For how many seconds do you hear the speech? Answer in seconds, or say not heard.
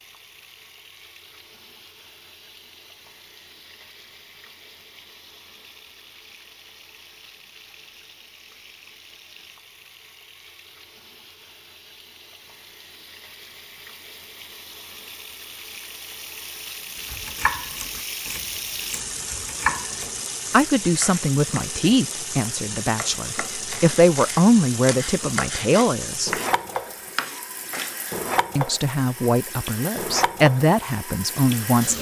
9 s.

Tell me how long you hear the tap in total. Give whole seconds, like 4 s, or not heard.
32 s.